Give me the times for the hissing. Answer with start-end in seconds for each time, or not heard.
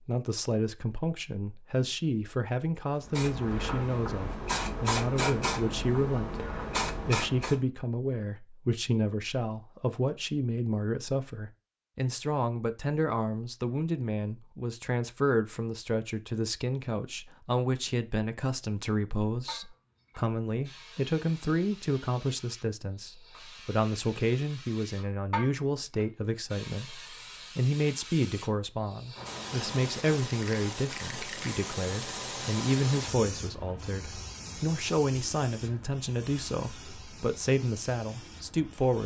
3.0-7.6, 19.4-39.0.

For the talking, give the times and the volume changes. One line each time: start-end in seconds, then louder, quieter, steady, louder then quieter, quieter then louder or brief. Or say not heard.
0.1-39.0 steady.